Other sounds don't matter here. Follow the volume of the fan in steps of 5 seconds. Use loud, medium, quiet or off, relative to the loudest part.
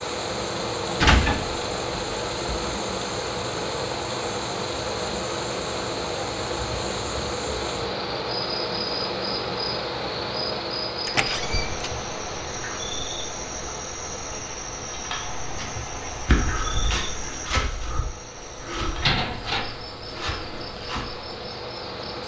loud, loud, medium, quiet, medium.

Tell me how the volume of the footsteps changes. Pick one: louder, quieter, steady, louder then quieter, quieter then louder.
quieter.